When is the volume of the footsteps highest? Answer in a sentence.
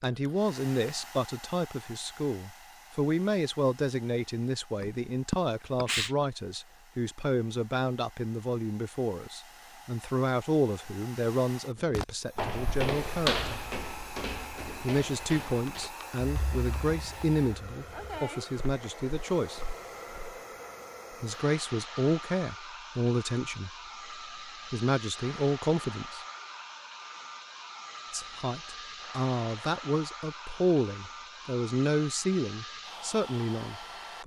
The loudest moment of the footsteps is at 13 seconds.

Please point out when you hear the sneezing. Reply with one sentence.
You can hear the sneezing from 4.8 to 6.2 s.